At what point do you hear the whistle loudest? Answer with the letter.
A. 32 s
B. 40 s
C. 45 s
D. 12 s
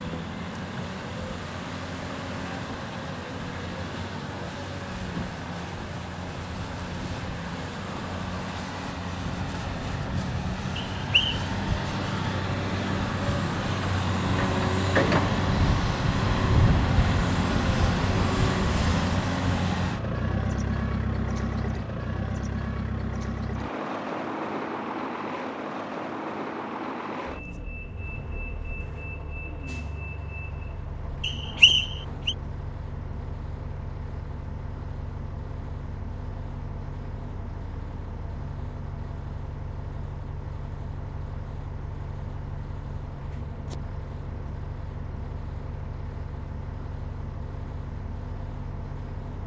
A.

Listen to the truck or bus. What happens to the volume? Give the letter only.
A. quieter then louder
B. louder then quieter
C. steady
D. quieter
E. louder
B.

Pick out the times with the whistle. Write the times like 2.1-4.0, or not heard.
10.9-11.4, 31.2-32.4.